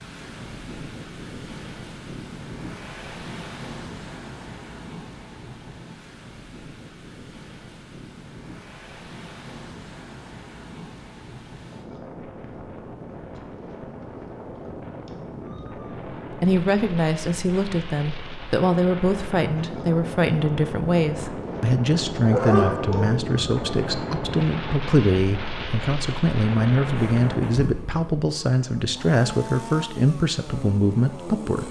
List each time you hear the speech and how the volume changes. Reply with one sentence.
You can hear the speech from 16.4 to 31.6 s, at a steady volume.